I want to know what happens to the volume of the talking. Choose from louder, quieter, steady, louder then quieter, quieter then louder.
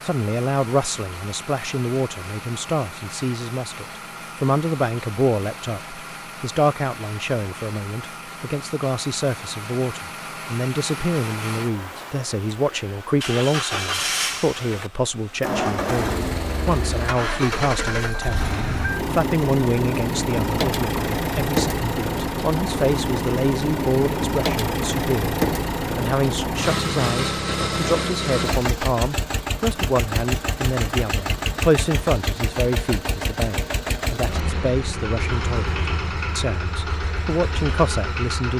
steady.